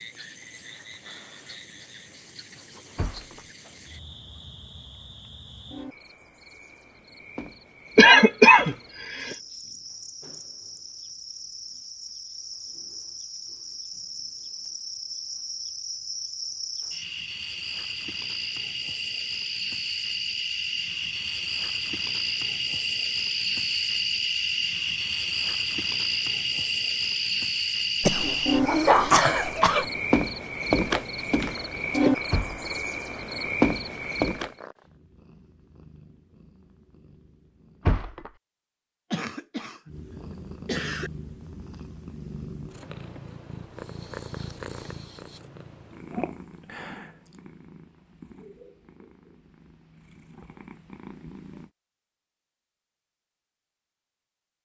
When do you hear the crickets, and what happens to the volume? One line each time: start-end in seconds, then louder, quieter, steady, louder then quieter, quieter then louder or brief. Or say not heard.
0.0-34.5 louder.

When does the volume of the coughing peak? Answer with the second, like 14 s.
8 s.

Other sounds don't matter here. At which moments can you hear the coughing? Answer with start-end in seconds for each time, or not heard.
8.0-9.3, 28.0-29.9, 39.1-39.9, 40.6-41.1.